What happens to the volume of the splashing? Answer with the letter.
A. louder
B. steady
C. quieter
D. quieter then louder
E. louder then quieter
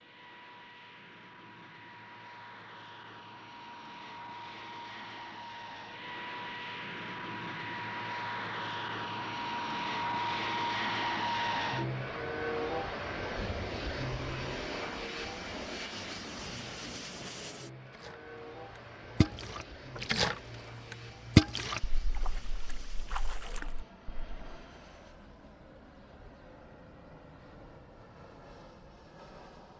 E.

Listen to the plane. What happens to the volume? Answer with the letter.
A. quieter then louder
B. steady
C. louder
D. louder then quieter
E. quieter
D.